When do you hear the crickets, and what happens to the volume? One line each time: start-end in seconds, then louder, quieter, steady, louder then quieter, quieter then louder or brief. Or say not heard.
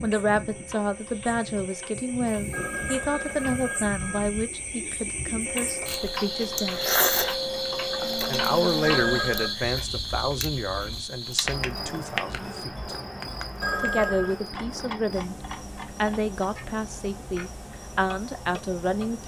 0.0-19.2 louder then quieter.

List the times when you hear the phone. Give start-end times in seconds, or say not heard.
2.5-4.5, 8.8-9.6, 13.6-14.3.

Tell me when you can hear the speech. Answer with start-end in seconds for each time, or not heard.
0.0-6.8, 8.2-12.9, 13.8-15.3, 15.9-19.2.